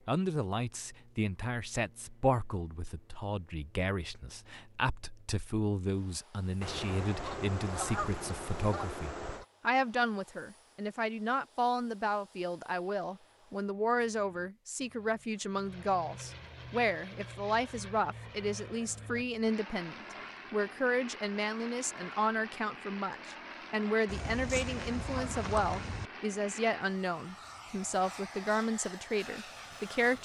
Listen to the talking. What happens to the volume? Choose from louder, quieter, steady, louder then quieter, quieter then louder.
steady.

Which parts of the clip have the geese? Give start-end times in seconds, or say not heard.
6.6-9.4, 24.1-26.1.